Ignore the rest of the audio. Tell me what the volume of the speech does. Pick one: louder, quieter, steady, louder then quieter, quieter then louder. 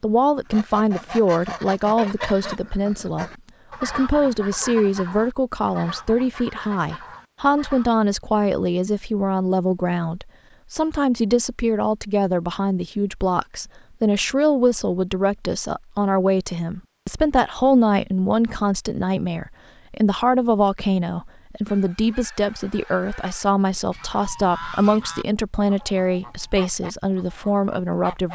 steady.